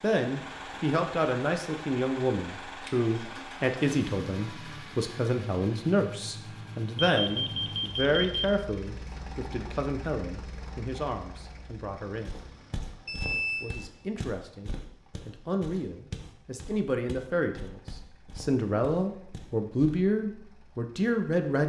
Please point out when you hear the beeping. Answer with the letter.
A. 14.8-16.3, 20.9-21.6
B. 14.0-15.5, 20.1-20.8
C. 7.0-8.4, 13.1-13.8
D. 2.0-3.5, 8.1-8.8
C.